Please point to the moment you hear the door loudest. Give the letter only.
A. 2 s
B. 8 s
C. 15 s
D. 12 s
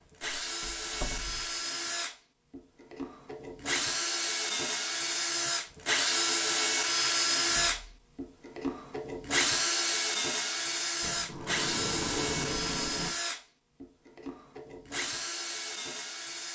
D.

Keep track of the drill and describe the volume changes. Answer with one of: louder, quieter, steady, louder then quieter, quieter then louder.
louder then quieter.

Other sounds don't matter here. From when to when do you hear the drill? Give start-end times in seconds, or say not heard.
0.1-16.5.